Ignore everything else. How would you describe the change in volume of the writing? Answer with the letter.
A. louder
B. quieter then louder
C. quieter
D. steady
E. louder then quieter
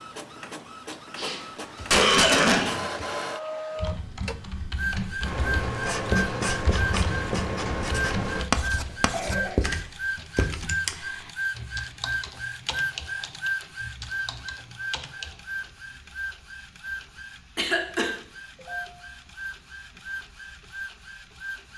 D.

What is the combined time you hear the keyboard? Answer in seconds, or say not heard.
12 s.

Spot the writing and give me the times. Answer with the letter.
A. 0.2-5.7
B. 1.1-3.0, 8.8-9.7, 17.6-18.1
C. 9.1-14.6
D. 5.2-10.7
D.